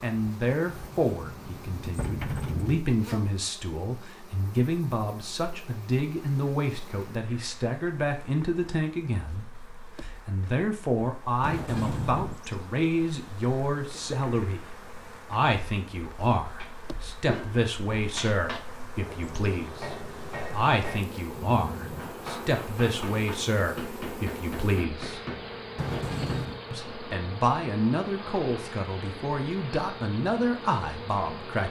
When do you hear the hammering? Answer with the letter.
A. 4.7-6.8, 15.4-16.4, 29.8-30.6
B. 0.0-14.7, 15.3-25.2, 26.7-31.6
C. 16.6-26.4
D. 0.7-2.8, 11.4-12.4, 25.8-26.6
C.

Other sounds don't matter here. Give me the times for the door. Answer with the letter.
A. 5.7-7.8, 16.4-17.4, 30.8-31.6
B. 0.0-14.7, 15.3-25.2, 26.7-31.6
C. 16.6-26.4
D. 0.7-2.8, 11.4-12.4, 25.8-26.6
D.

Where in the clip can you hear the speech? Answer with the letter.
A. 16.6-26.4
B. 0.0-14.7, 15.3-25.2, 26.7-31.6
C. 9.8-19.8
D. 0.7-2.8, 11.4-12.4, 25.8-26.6
B.